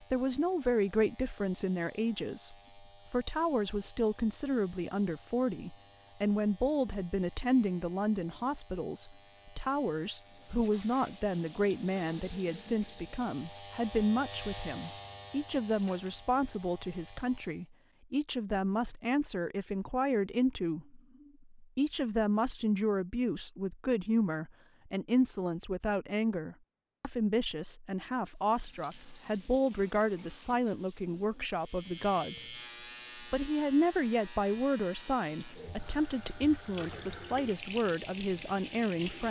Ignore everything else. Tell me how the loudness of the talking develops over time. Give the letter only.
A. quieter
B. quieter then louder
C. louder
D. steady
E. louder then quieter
D.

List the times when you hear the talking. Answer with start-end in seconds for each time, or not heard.
0.0-32.5, 33.1-39.2.